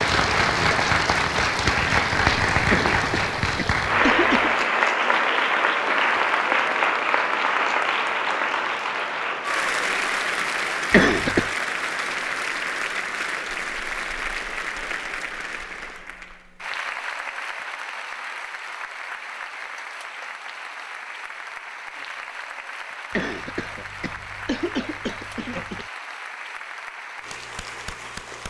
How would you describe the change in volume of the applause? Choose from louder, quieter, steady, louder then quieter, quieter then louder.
quieter.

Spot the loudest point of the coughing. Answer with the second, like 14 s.
11 s.